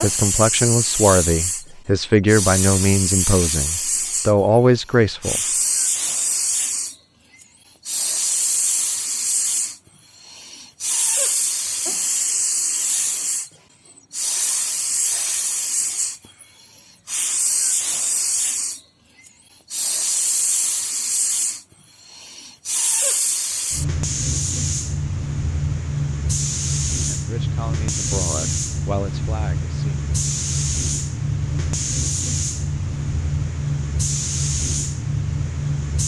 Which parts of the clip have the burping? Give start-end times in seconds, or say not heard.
not heard.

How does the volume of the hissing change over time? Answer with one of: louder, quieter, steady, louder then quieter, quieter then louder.
steady.